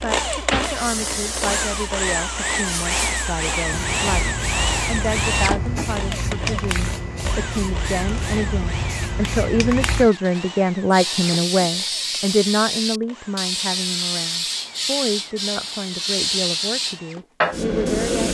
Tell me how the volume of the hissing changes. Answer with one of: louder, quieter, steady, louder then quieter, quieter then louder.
louder.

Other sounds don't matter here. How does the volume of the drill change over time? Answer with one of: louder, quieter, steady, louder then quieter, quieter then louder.
quieter.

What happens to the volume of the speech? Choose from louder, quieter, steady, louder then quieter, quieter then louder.
louder then quieter.